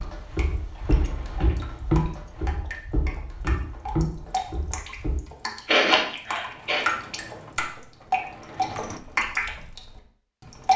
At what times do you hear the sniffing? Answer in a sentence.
You can hear the sniffing from 5.7 to 6.8 s.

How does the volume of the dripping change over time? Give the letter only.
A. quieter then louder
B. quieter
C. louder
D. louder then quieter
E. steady
C.